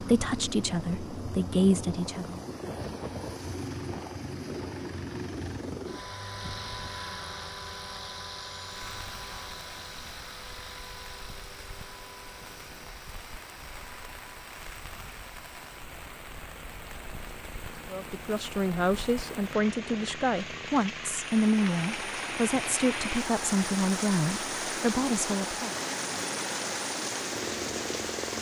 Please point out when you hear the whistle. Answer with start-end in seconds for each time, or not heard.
not heard.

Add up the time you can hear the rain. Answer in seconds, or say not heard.
20 s.